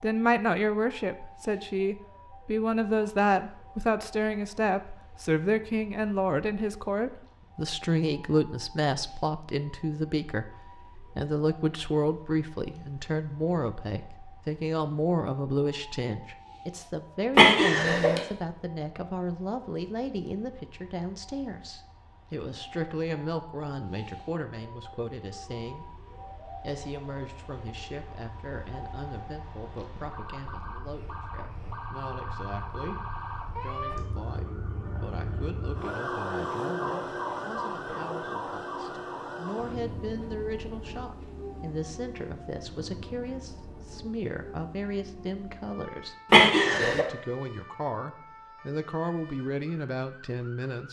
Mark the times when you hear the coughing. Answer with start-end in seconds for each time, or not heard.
17.4-18.2, 46.3-47.0.